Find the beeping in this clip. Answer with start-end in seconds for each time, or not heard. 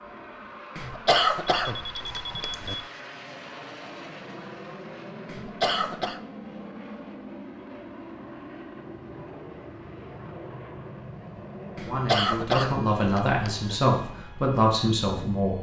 1.6-2.9.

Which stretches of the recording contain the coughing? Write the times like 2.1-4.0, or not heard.
0.8-2.8, 5.2-6.2, 11.8-13.7.